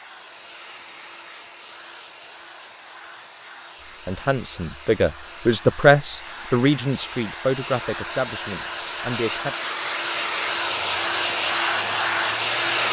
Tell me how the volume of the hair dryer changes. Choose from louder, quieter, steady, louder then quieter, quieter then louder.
louder.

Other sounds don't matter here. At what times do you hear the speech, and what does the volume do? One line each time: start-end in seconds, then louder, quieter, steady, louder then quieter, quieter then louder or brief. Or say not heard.
4.0-9.6 louder then quieter.